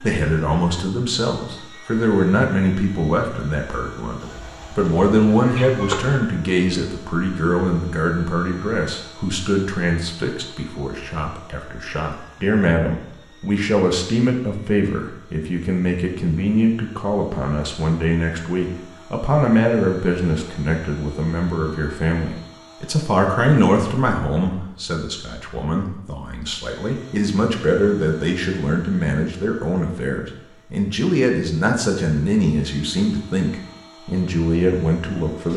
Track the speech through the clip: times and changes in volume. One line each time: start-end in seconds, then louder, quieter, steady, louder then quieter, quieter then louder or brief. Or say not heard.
0.0-35.5 steady.